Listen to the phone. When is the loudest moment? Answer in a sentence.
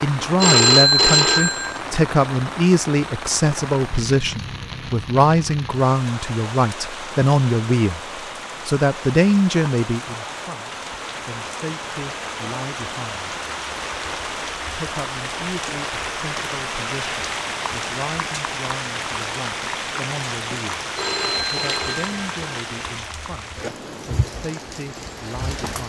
The volume of the phone peaks at 1 second.